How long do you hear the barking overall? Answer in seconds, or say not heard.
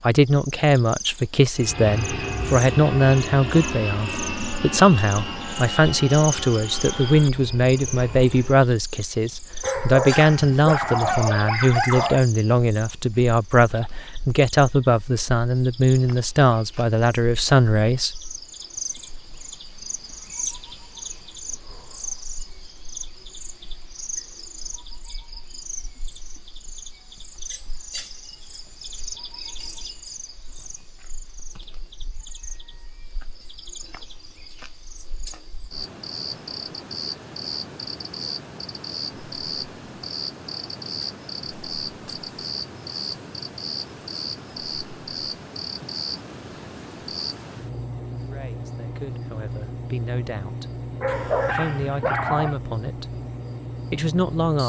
4 s.